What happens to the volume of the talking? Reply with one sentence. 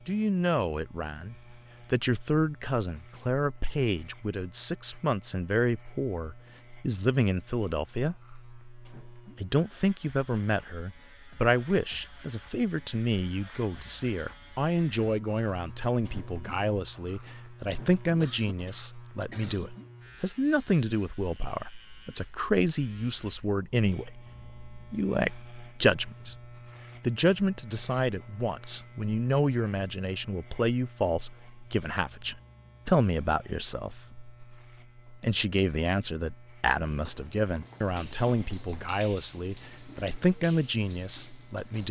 The loudness of the talking stays about the same.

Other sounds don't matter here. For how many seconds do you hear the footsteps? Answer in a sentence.
The footsteps can't be heard in this clip.